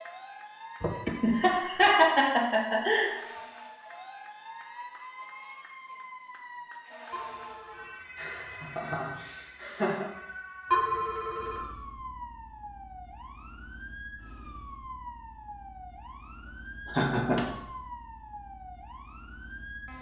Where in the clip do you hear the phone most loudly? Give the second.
11 s.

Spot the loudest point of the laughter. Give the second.
2 s.